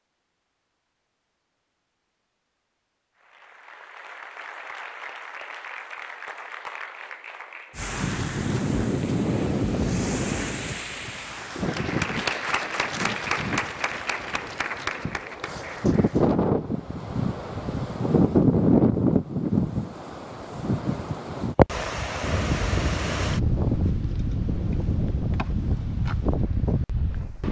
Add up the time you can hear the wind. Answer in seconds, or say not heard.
20 s.